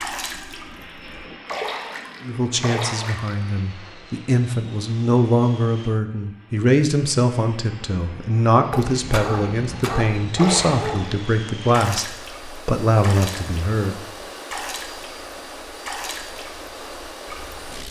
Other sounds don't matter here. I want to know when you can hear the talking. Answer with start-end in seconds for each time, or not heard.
2.2-14.0.